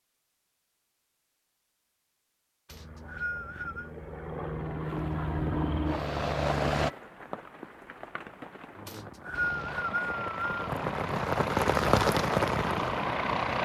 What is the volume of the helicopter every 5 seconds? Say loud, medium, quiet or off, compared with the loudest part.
medium, loud, loud.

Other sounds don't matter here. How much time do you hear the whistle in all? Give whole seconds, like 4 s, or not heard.
3 s.